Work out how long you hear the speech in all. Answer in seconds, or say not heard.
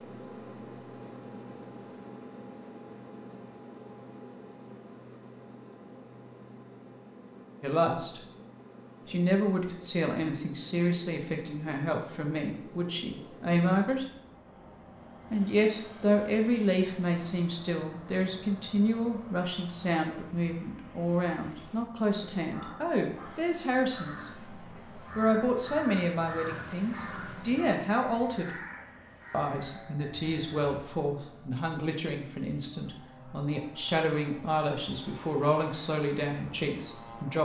27 s.